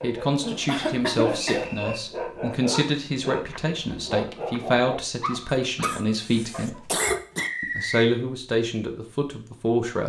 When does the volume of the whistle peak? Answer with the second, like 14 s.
8 s.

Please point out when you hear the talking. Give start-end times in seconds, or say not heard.
0.0-6.8, 7.6-10.0.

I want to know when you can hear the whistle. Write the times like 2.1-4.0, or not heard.
0.7-2.0, 7.0-8.1.